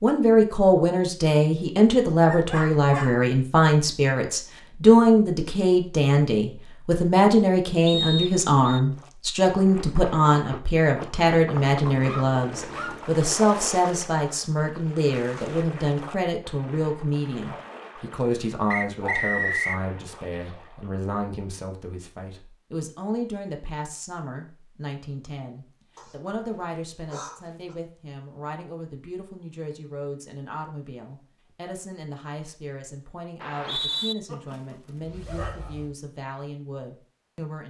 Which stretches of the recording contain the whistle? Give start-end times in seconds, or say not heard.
7.8-8.8, 18.7-19.8, 33.4-34.1.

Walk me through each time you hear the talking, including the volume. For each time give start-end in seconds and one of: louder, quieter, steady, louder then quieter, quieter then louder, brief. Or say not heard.
0.0-37.6 quieter.